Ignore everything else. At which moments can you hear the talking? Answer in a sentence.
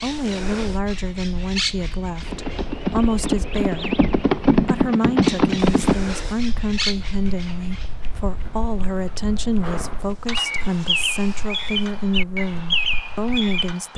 You can hear the talking from 0.0 to 4.0 s and from 4.7 to 13.9 s.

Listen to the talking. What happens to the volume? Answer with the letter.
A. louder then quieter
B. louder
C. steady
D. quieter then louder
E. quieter
C.